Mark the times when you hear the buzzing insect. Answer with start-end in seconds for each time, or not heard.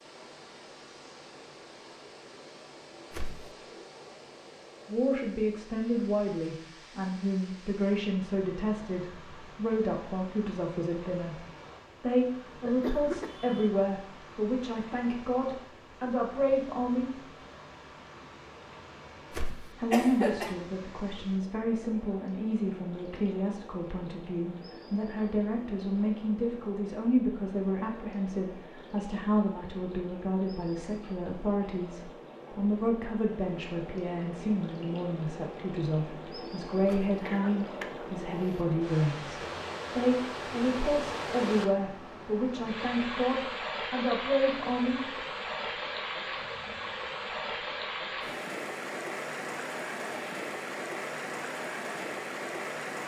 not heard.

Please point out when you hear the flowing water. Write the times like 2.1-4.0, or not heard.
0.0-53.0.